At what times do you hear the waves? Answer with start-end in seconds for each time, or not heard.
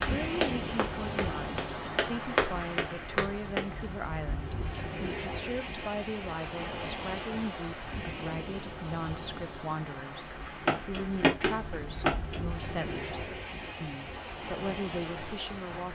0.0-15.9.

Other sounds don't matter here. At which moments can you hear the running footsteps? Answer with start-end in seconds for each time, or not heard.
0.0-3.7, 10.7-12.4.